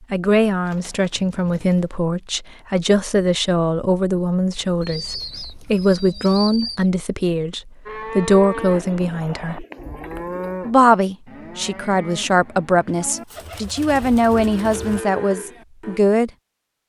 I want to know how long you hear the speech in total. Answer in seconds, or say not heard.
15 s.